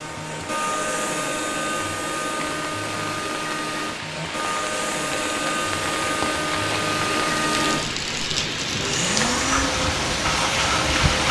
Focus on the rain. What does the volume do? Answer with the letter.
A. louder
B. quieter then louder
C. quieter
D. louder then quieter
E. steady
A.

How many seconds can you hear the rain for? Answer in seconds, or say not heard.
11 s.